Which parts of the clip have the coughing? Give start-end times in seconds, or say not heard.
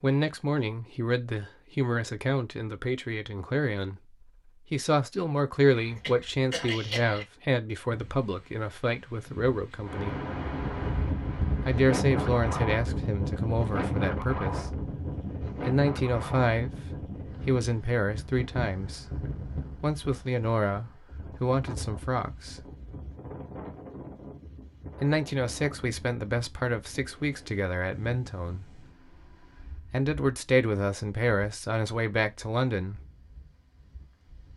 5.7-7.2.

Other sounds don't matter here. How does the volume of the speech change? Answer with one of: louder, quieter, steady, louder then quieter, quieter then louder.
steady.